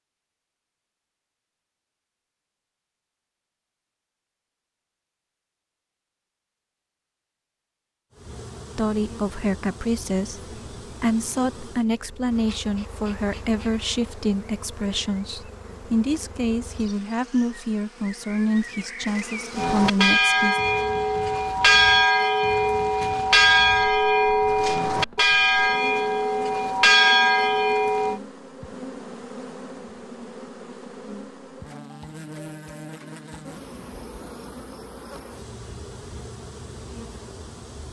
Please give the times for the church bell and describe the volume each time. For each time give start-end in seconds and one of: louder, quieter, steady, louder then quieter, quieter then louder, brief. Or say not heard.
19.6-28.2 steady.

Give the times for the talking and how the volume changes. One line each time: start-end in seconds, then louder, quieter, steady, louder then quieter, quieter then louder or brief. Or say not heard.
8.8-20.6 steady.